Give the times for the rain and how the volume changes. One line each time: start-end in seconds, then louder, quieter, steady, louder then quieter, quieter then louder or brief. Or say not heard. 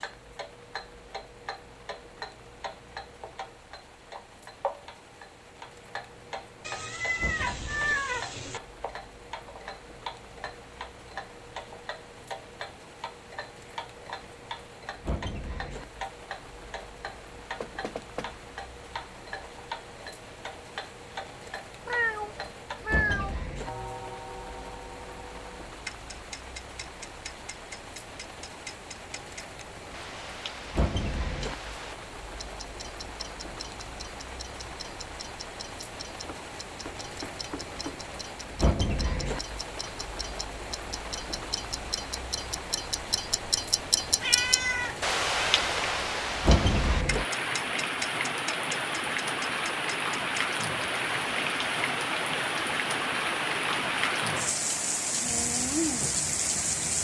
0.0-57.0 louder.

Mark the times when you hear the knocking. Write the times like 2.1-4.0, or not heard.
17.6-18.3, 36.2-38.0.